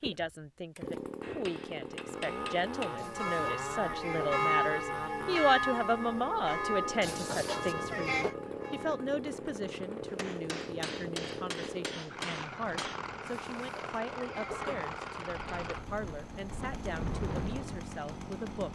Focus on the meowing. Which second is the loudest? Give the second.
8 s.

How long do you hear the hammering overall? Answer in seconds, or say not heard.
5 s.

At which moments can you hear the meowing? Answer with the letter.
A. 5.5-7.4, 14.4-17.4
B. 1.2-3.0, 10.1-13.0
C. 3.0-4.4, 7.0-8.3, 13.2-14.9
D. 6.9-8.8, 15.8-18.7
C.